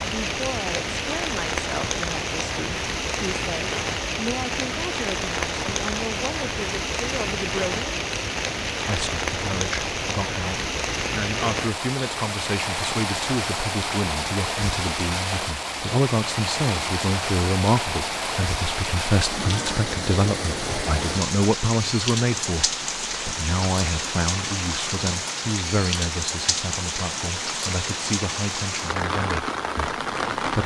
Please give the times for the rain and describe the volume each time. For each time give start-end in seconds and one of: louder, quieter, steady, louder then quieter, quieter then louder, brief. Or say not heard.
0.0-30.6 steady.